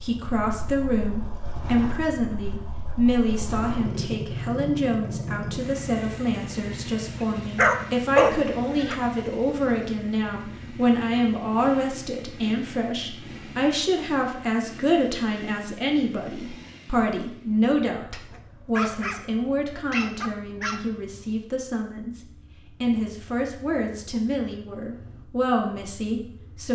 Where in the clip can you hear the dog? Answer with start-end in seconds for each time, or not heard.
7.5-8.9, 18.1-20.8.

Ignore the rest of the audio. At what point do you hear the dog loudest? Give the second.
8 s.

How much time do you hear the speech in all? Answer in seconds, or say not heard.
27 s.